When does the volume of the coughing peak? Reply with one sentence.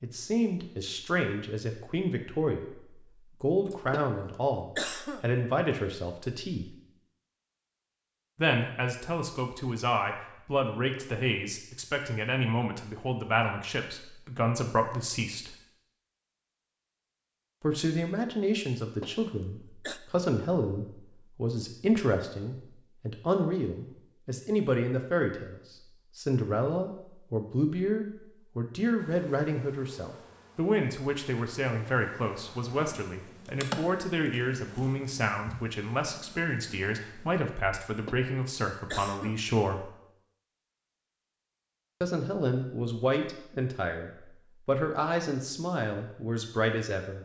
The loudest moment of the coughing is at 5 seconds.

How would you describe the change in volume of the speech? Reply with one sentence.
The volume of the speech stays about the same.